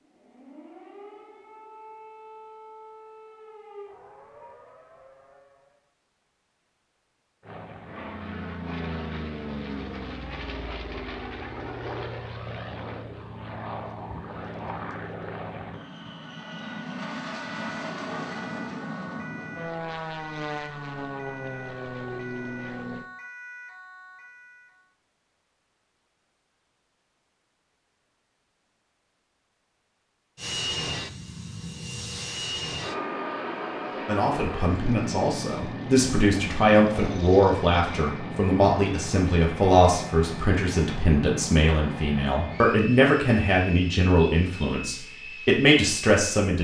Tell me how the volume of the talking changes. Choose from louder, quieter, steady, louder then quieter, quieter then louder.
steady.